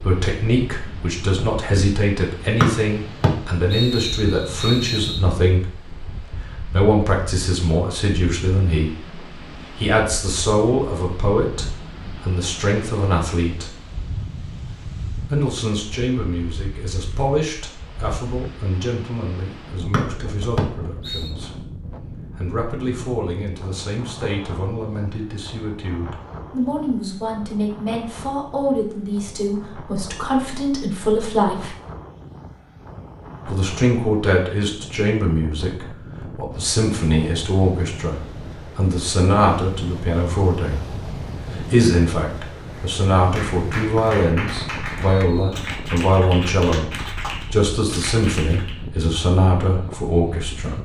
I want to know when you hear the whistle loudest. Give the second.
3 s.